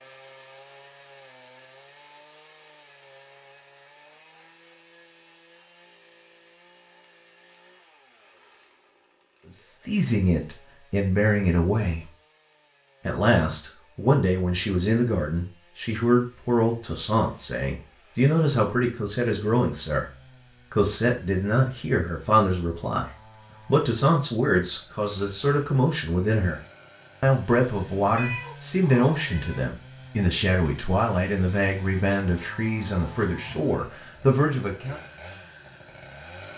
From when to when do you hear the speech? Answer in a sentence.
The speech can be heard from 9.7 to 12.1 s, from 13.1 to 26.6 s and from 27.2 to 35.0 s.